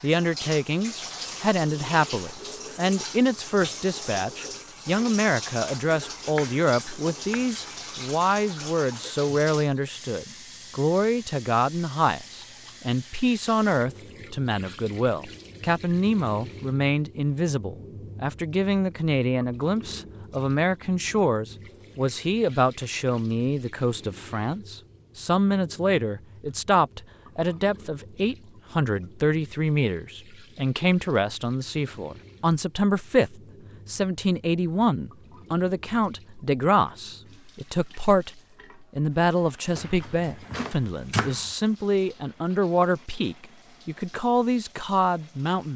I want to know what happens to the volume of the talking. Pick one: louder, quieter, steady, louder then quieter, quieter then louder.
steady.